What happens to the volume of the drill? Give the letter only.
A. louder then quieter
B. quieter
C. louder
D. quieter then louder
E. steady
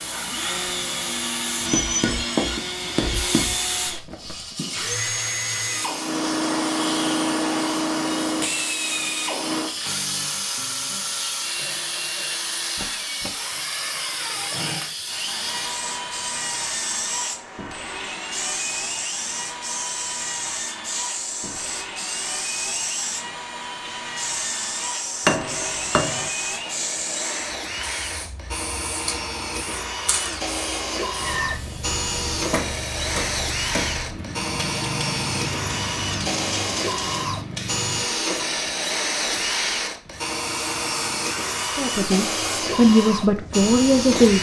D.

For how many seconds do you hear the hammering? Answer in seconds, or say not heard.
6 s.